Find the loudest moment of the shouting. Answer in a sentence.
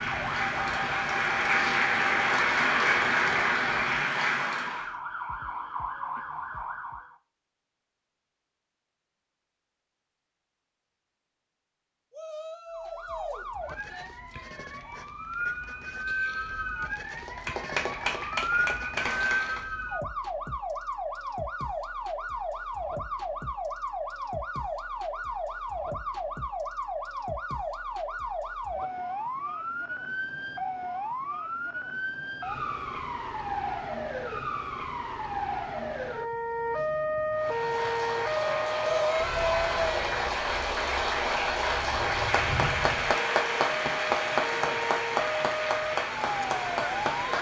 The volume of the shouting peaks at 39 seconds.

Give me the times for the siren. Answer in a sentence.
You can hear the siren from 0.0 to 7.2 s and from 12.7 to 47.3 s.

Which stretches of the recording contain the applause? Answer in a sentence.
The applause can be heard from 0.0 to 4.9 s, from 17.1 to 19.6 s and from 37.4 to 47.3 s.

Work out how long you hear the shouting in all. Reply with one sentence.
You can hear the shouting for 3 seconds altogether.